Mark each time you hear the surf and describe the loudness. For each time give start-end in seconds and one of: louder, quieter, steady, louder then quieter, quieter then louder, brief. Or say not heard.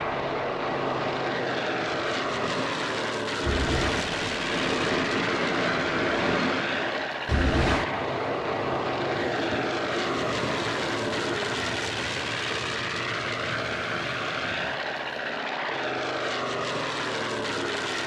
0.0-14.8 louder then quieter.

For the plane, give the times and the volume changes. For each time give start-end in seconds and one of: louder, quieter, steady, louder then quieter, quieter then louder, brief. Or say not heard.
0.0-18.0 steady.